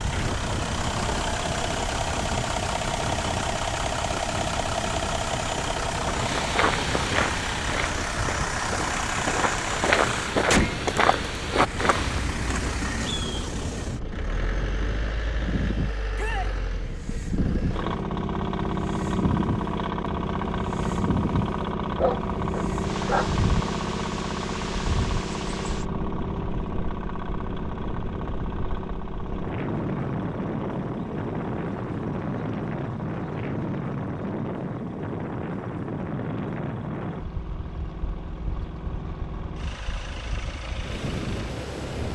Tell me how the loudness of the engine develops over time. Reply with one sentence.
The loudness of the engine goes down.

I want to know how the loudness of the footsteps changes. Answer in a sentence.
The loudness of the footsteps goes down, then up.